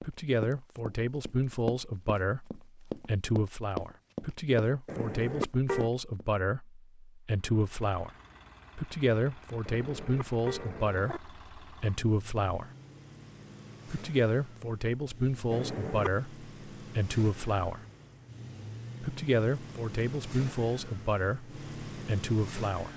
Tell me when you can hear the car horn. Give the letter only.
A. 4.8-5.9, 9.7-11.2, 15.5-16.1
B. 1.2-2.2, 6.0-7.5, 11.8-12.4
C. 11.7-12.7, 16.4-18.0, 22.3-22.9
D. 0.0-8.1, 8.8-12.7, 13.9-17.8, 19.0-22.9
A.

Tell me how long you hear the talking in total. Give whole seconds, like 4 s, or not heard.
20 s.